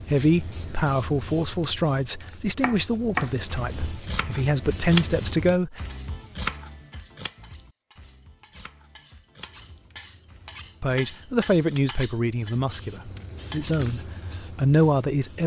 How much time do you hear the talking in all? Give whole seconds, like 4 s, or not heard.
10 s.